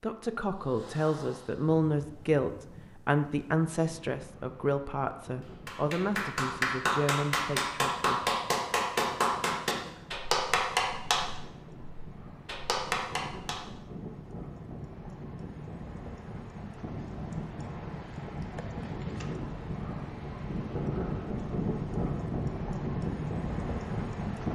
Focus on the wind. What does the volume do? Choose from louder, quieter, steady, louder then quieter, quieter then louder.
louder.